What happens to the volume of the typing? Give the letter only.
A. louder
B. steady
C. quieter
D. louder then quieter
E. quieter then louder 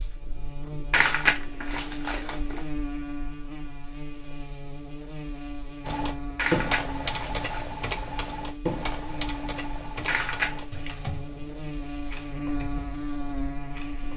C.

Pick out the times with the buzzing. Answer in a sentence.
You can hear the buzzing from 0.0 to 14.1 s.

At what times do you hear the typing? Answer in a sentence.
You can hear the typing from 5.8 to 14.1 s.